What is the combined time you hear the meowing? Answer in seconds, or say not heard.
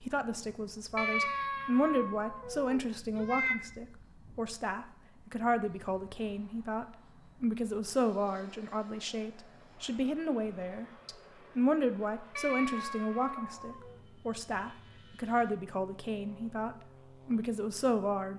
4 s.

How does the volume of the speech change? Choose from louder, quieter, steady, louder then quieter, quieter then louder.
steady.